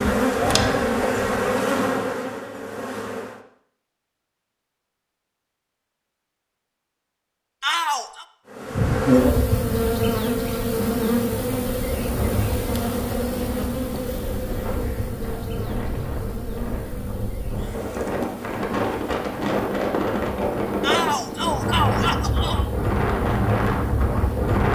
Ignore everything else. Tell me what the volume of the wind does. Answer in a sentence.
The volume of the wind goes up.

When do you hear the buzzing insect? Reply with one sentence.
The buzzing insect can be heard from 0.0 to 3.4 s and from 8.5 to 24.6 s.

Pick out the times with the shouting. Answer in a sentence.
The shouting can be heard from 7.6 to 8.2 s and from 20.8 to 22.7 s.